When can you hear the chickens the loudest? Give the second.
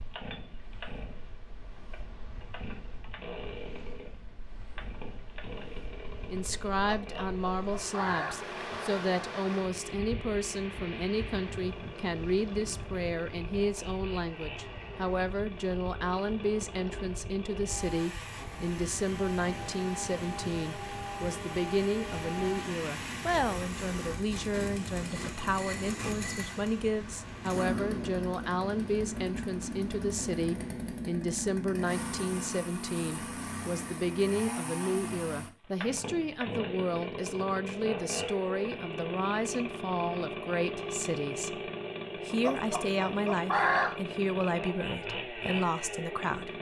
44 s.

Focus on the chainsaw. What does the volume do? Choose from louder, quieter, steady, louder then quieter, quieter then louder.
louder.